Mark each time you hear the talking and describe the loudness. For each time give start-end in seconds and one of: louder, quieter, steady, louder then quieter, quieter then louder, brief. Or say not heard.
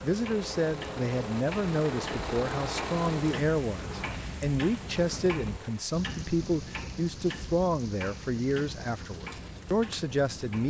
0.0-10.6 steady.